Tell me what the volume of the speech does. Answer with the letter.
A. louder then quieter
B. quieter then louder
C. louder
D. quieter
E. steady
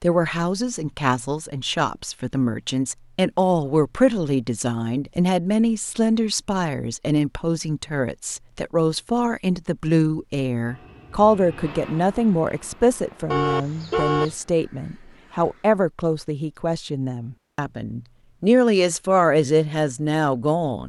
E.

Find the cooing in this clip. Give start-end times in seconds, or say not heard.
not heard.